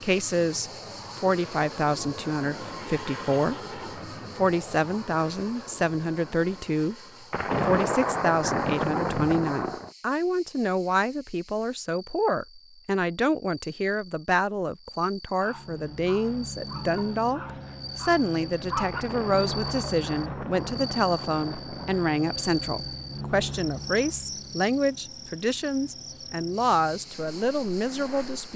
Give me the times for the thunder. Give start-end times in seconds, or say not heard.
7.3-9.9, 18.9-22.1.